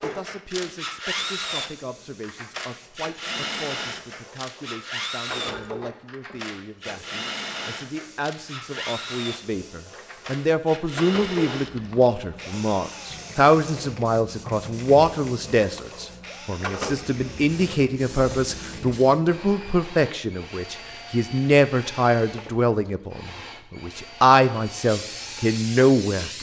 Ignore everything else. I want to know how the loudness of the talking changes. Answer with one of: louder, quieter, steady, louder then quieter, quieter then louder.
louder.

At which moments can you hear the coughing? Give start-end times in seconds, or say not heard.
5.3-6.0.